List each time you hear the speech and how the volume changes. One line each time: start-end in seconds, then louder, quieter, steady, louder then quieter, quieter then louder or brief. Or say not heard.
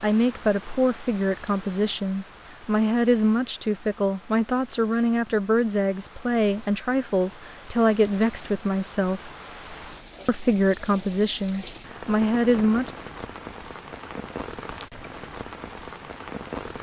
0.0-9.3 steady
10.2-12.9 brief.